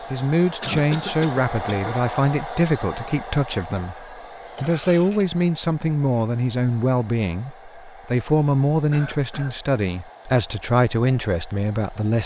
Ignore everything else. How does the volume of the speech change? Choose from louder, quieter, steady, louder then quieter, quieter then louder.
steady.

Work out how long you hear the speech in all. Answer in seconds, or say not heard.
12 s.